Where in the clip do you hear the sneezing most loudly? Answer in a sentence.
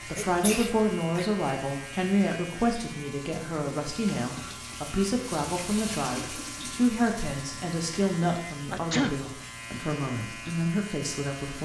The loudest moment of the sneezing is at 9 seconds.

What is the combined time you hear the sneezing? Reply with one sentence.
The sneezing can be heard for 2 seconds in total.